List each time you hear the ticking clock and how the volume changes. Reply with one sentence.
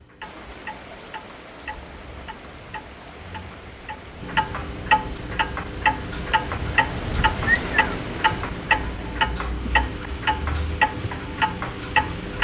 The ticking clock can be heard from 0.0 to 12.3 s, getting louder.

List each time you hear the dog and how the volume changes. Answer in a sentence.
The dog can't be heard in this clip.